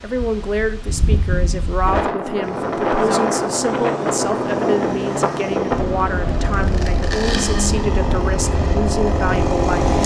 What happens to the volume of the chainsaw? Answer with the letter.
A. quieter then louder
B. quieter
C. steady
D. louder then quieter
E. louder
E.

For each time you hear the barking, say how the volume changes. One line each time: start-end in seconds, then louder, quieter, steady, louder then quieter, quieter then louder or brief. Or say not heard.
not heard.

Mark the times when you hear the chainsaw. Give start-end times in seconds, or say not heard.
2.4-10.0.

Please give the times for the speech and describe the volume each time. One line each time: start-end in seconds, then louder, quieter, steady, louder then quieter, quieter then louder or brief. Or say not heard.
0.0-9.8 steady.